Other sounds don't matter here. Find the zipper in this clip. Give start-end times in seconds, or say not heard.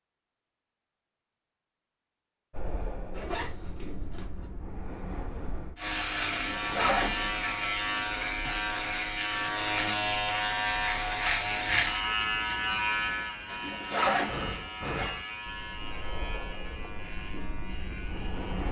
3.1-4.5, 6.3-7.7, 13.4-15.2.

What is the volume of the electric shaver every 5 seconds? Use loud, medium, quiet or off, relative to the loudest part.
off, loud, loud, quiet.